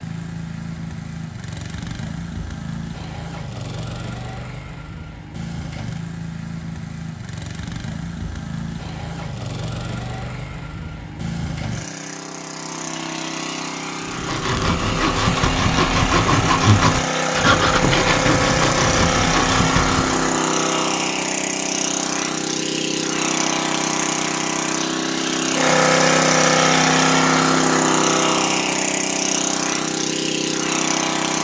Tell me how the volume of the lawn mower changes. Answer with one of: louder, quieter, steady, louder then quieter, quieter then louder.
louder.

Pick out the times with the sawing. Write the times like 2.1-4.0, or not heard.
14.1-20.4.